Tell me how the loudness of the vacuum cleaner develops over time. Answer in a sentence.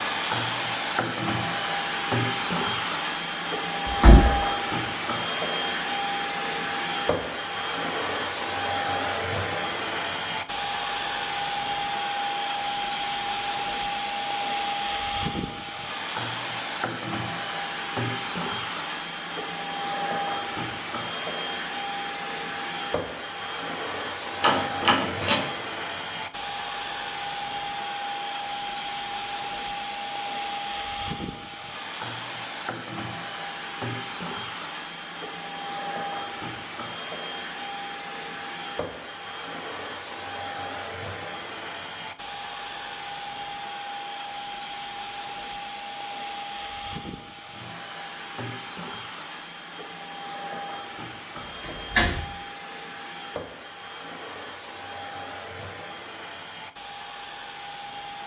The volume of the vacuum cleaner goes down.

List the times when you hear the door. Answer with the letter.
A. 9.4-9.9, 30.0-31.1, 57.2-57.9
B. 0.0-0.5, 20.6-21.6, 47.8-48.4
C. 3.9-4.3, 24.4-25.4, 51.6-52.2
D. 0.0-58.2
C.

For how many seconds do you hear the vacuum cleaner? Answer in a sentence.
The vacuum cleaner can be heard for 58 seconds in total.